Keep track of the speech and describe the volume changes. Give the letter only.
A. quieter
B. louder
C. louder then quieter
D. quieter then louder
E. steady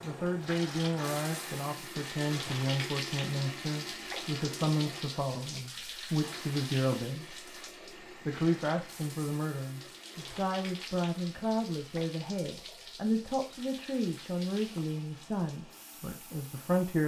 E.